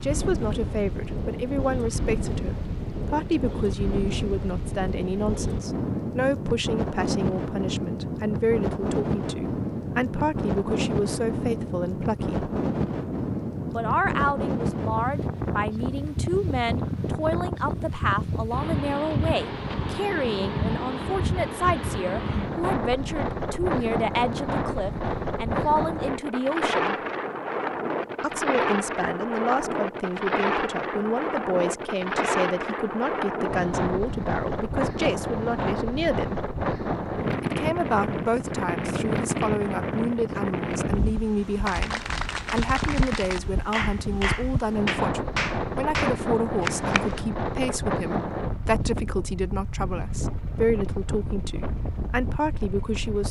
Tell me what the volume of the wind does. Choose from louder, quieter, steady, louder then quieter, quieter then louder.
steady.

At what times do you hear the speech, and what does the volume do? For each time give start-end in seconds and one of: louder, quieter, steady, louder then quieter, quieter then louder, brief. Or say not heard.
0.0-12.5 steady
13.8-26.9 steady
28.2-36.4 steady
37.4-53.2 steady.